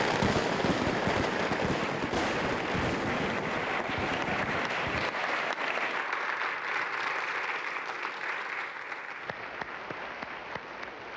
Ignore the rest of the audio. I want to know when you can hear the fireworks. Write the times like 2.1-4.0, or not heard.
0.0-5.2.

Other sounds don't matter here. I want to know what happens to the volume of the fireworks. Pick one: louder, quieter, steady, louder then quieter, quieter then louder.
quieter.